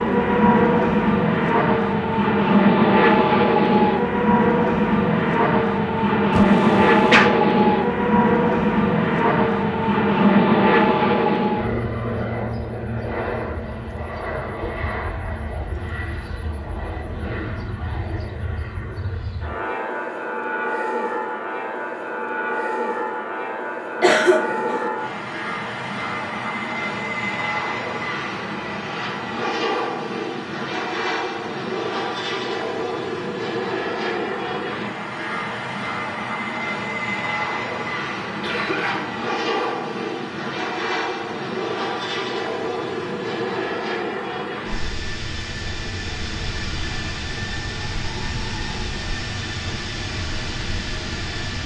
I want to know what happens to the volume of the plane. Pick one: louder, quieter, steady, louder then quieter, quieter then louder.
quieter.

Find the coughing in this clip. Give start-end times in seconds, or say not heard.
6.3-7.3, 24.0-24.9, 38.4-39.0.